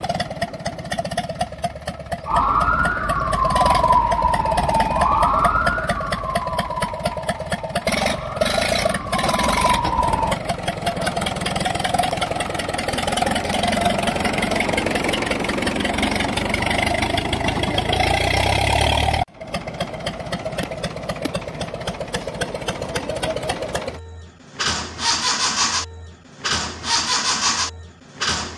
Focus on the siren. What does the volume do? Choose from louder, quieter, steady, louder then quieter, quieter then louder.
quieter then louder.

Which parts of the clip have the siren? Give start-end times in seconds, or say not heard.
2.2-10.4.